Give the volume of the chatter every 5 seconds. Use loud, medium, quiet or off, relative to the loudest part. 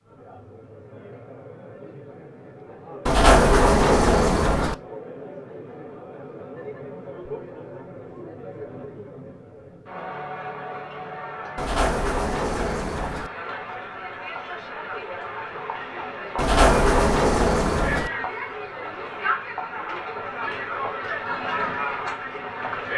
quiet, medium, medium, loud, loud.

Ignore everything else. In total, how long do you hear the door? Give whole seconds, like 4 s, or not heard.
5 s.